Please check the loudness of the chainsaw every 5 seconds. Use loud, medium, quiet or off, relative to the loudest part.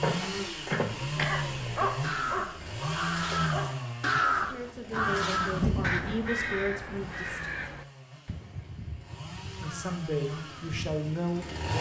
loud, medium, loud.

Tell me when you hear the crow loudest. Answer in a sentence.
The loudest moment of the crow is at 4 seconds.